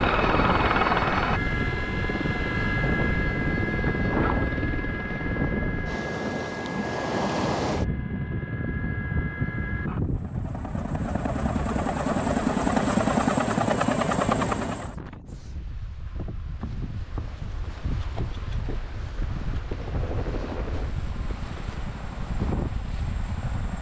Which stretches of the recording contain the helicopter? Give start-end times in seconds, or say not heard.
0.0-14.9, 19.6-23.7.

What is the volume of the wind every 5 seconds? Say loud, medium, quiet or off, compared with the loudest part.
loud, loud, loud, medium, medium.